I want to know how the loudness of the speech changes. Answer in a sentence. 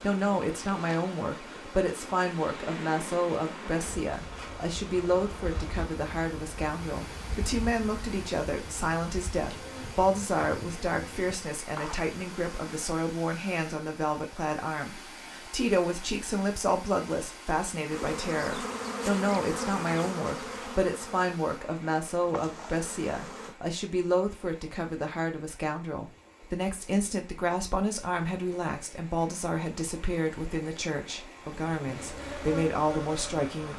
The volume of the speech stays about the same.